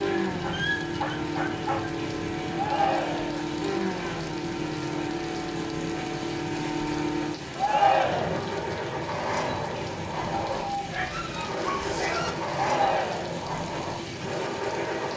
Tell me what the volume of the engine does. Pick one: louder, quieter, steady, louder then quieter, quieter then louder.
steady.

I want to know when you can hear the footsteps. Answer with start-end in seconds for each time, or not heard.
not heard.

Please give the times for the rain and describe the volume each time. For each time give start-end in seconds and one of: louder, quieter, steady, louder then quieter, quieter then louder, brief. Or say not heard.
0.0-15.1 steady.